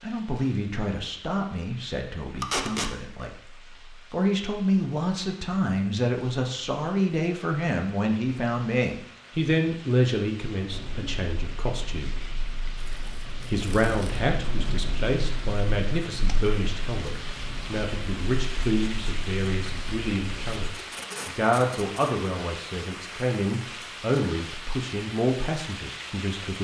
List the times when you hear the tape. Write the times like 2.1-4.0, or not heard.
2.4-2.9, 12.8-14.2, 20.7-22.3.